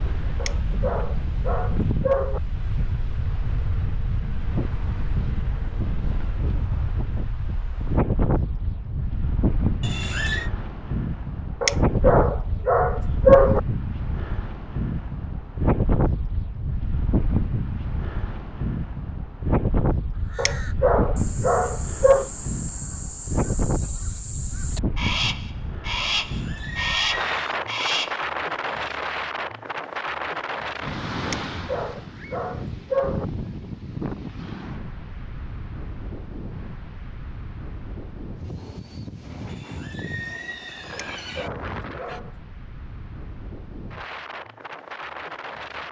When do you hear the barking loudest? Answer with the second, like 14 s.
13 s.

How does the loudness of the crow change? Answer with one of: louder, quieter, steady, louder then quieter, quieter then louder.
louder.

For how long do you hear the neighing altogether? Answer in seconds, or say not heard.
4 s.